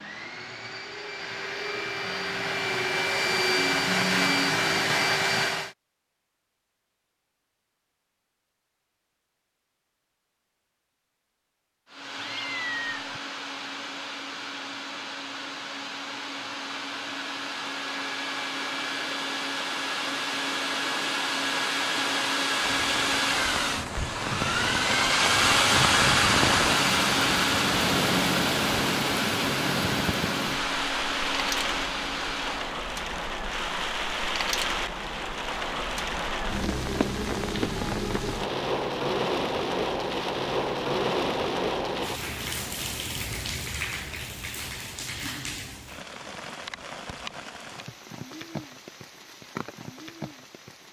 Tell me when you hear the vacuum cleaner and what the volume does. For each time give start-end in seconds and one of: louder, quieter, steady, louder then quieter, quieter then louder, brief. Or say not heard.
0.0-5.8 louder
11.8-32.8 louder then quieter.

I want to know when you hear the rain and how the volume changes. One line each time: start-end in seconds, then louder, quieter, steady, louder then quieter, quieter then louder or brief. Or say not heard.
22.2-50.8 quieter.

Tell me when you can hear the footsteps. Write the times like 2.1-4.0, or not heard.
not heard.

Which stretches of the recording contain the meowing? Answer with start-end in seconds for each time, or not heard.
12.2-13.2.